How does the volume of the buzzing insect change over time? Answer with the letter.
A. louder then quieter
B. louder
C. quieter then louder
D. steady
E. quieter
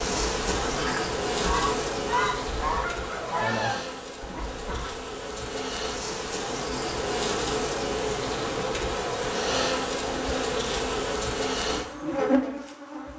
C.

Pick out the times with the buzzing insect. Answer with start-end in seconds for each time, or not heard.
0.0-13.1.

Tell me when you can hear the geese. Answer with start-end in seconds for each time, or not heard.
0.0-5.0.